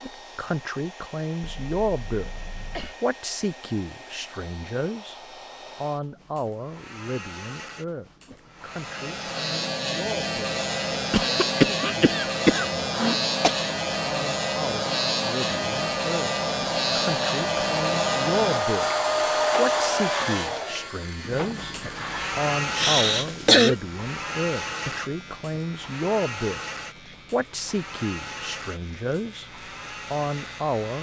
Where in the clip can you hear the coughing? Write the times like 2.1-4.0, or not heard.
1.4-3.0, 11.1-13.6, 22.8-23.8.